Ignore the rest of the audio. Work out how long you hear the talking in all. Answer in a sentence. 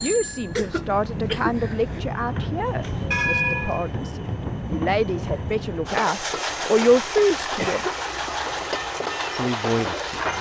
You can hear the talking for 9 seconds altogether.